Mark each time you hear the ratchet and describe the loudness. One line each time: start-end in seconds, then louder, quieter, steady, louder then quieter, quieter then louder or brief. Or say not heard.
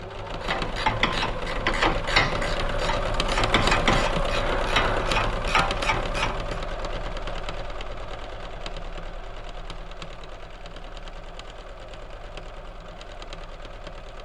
0.4-6.6 steady.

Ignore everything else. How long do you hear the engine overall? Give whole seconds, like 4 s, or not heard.
14 s.